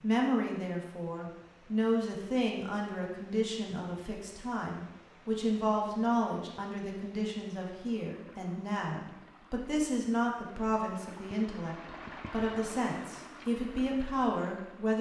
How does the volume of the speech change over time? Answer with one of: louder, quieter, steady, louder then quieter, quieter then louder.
steady.